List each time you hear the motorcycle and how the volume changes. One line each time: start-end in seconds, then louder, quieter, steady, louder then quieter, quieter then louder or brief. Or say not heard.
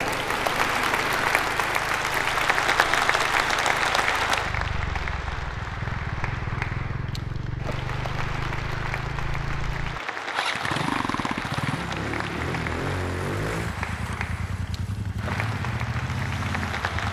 0.0-17.0 louder.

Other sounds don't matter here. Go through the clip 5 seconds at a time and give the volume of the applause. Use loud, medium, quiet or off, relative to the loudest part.
loud, medium, medium, medium.